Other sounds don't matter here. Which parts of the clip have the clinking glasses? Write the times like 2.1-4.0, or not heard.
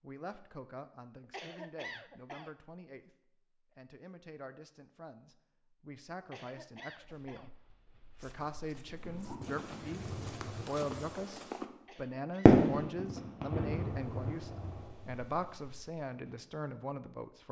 not heard.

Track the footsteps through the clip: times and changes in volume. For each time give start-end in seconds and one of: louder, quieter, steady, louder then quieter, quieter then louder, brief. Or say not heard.
7.0-11.7 louder.